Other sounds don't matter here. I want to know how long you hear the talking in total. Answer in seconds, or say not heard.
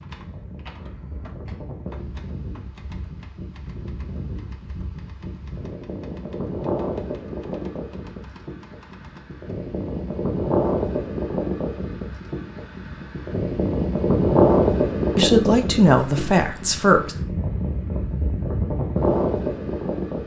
2 s.